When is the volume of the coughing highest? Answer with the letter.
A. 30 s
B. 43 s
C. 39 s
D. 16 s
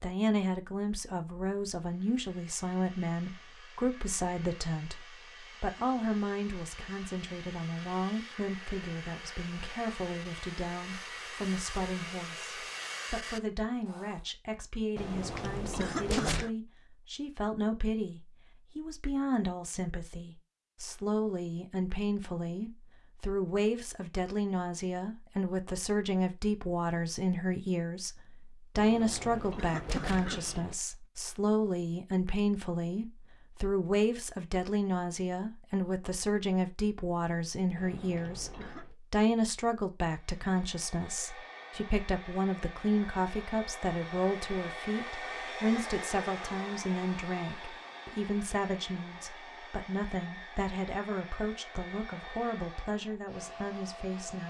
D.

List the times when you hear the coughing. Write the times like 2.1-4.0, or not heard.
14.9-16.5, 28.8-30.8, 37.8-39.0.